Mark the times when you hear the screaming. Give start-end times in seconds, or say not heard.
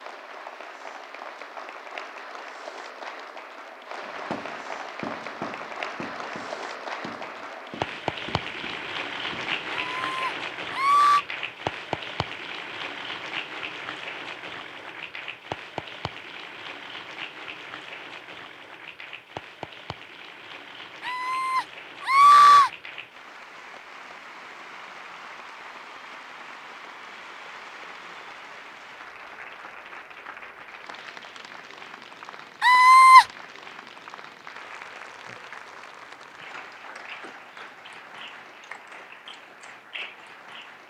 9.7-11.2, 21.1-22.7, 32.6-33.2.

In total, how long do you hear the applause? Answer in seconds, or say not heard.
41 s.